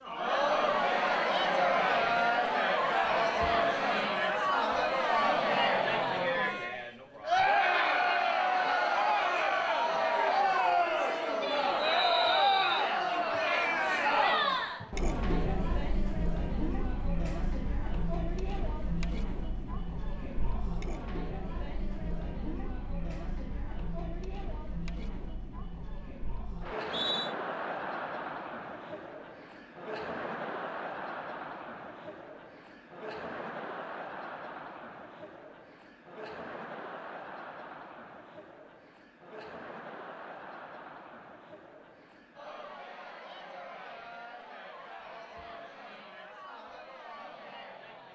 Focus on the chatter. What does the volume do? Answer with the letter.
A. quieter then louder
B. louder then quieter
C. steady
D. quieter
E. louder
D.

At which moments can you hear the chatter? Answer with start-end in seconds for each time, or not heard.
0.0-48.1.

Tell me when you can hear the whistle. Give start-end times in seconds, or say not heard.
11.8-12.9, 26.6-27.4.